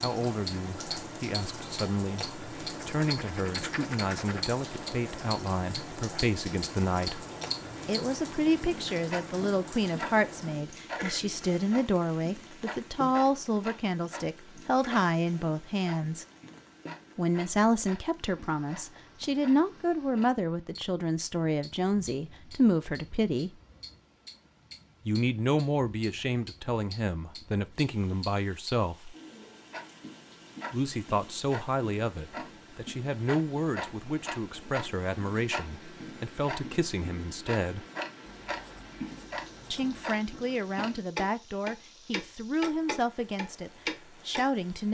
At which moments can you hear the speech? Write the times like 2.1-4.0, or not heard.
0.0-7.2, 7.8-16.2, 17.1-23.5, 25.1-29.1, 30.7-37.9, 39.7-44.8.